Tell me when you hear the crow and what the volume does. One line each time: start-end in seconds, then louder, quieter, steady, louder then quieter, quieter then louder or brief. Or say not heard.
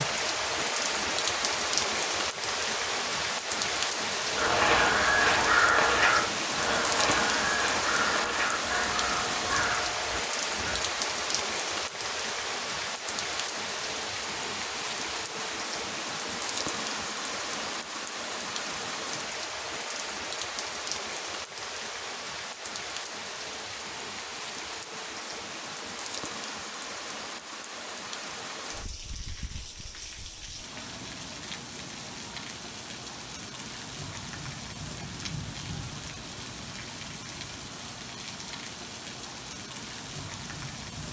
4.3-10.8 quieter.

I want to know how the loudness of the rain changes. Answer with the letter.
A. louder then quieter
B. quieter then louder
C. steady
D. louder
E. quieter
E.